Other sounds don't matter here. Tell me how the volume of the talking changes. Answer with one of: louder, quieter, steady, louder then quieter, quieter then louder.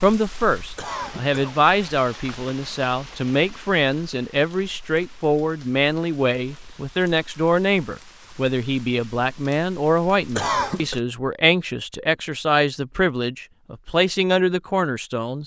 steady.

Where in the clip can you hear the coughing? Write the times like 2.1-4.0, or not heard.
0.8-1.7, 10.3-11.0.